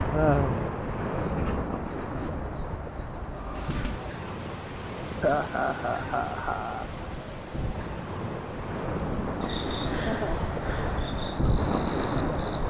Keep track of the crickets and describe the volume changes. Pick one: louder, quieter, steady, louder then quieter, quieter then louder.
louder then quieter.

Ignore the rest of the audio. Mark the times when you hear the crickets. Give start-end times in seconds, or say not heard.
0.0-12.6.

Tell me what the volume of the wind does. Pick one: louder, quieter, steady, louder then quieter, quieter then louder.
quieter then louder.